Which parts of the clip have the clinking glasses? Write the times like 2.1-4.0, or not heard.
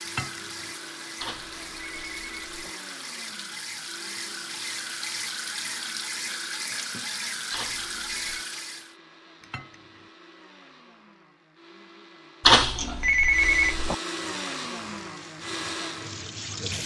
0.1-0.8, 9.4-10.1.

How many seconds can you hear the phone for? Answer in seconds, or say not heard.
4 s.